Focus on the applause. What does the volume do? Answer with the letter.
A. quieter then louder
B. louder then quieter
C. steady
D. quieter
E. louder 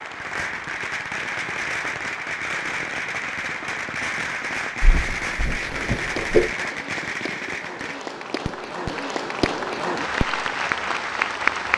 E.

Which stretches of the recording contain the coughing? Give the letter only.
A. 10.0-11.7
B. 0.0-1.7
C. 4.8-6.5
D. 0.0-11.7
C.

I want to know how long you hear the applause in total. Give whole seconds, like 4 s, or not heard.
12 s.